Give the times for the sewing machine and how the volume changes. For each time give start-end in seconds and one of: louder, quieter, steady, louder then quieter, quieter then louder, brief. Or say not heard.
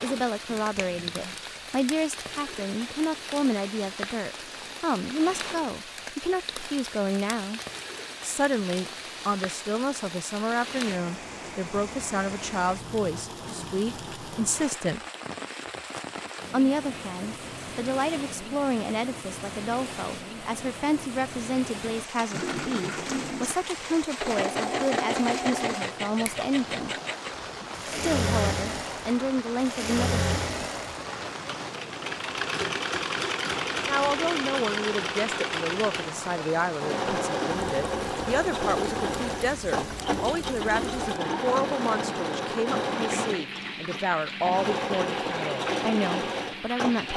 22.3-47.1 steady.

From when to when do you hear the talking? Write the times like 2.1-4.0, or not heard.
0.0-7.6, 8.2-15.0, 16.5-26.9, 27.9-30.2, 33.9-47.1.